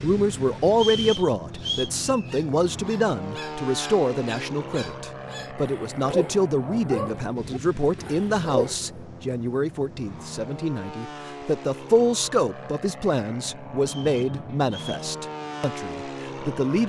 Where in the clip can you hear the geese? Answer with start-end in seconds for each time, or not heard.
not heard.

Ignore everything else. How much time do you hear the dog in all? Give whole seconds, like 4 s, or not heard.
7 s.